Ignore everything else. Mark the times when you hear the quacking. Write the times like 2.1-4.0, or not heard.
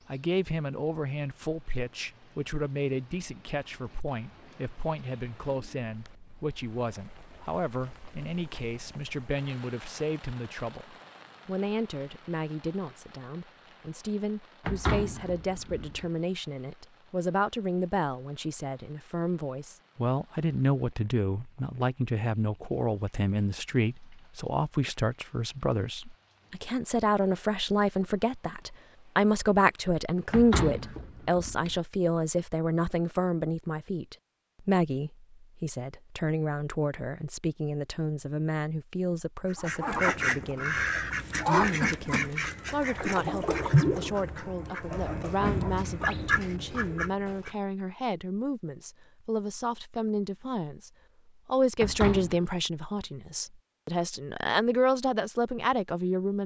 39.5-47.5.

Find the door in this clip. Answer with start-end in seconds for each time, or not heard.
14.7-16.1, 30.3-31.8, 51.8-52.5.